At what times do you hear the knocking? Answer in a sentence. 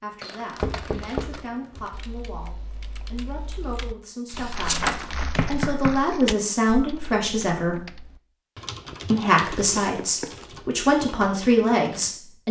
You can hear the knocking from 0.6 to 1.9 s, from 4.3 to 6.1 s and from 10.0 to 10.4 s.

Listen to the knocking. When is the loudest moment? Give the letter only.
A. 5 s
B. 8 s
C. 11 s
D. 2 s
A.